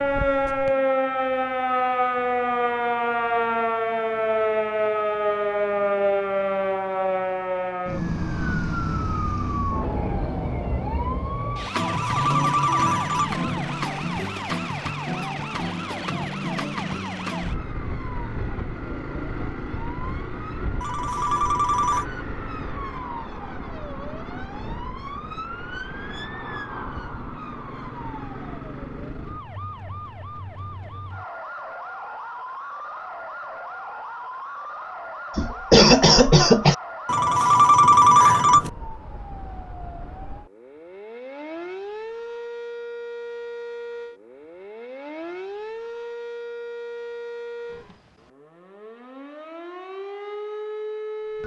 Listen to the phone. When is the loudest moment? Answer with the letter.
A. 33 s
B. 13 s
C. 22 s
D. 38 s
D.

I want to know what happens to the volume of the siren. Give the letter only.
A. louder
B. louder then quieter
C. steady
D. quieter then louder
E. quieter
E.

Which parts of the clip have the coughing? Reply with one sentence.
You can hear the coughing from 35.4 to 36.8 s.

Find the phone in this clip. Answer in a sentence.
The phone can be heard from 11.8 to 13.3 s, from 20.8 to 22.1 s and from 37.0 to 38.7 s.